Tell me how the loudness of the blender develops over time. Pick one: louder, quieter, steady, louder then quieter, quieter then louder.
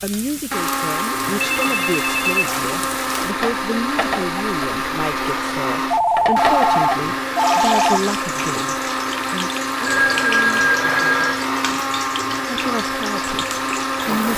steady.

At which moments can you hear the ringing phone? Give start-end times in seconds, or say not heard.
1.2-3.2, 5.9-8.0, 9.8-11.4.